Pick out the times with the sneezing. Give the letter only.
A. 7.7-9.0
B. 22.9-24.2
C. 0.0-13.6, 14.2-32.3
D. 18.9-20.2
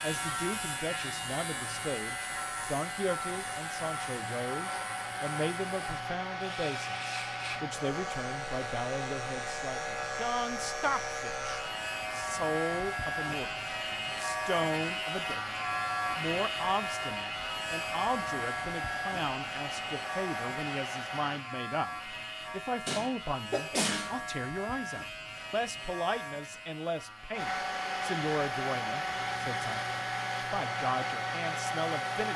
B.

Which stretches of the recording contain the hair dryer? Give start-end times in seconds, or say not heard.
0.0-21.4, 27.3-32.3.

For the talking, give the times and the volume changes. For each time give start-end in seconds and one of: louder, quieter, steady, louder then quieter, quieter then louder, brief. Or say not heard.
0.0-13.6 steady
14.2-32.3 steady.